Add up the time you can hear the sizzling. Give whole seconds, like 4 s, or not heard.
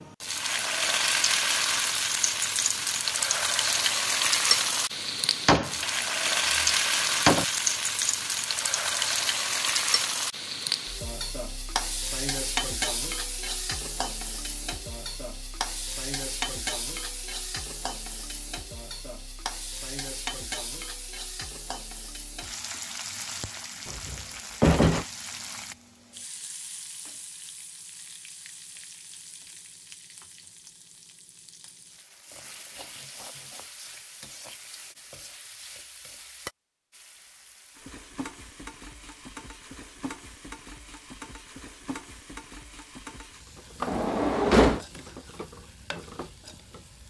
47 s.